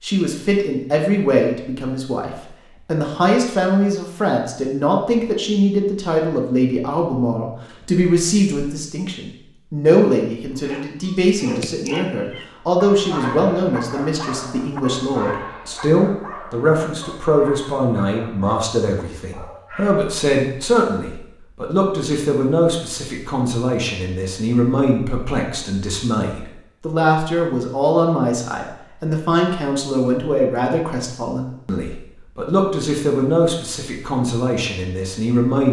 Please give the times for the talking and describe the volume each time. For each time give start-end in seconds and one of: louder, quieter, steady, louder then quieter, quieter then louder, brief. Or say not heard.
0.0-35.6 steady.